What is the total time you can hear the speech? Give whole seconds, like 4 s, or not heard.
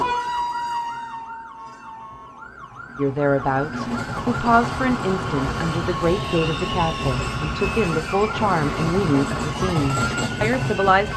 8 s.